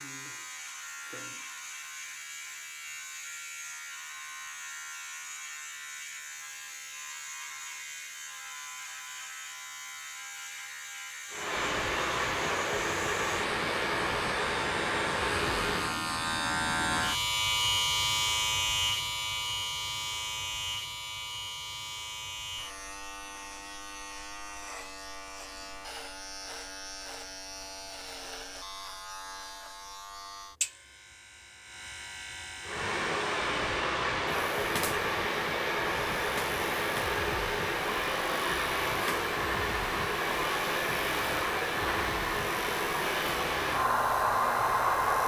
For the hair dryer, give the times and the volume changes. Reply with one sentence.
You can hear the hair dryer from 11.3 to 16.0 s, at a steady volume; and from 32.6 to 45.2 s, at a steady volume.